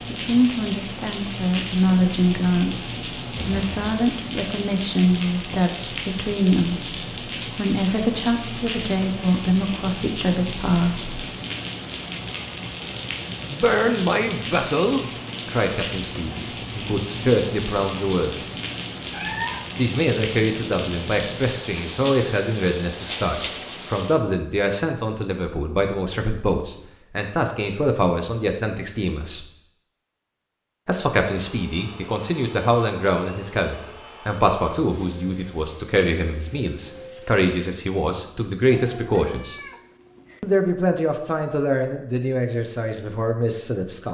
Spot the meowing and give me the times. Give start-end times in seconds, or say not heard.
3.4-4.0, 19.1-19.7, 38.9-40.4.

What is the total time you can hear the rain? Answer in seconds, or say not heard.
24 s.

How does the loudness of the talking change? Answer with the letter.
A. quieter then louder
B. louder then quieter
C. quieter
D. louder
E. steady
E.